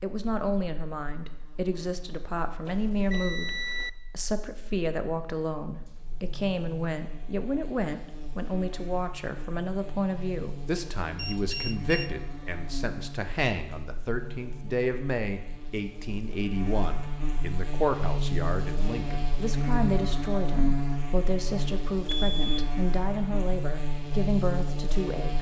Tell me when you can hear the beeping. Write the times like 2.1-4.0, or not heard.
2.6-3.9, 11.2-12.1, 22.1-22.6.